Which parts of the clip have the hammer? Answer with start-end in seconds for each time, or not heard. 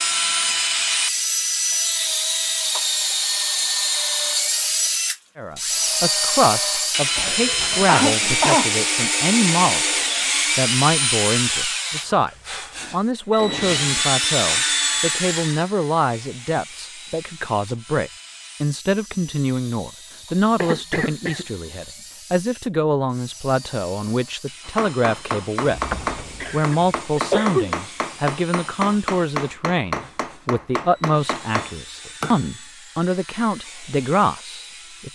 24.6-32.5.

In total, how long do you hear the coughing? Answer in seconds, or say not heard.
4 s.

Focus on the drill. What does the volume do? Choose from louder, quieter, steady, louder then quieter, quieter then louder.
quieter.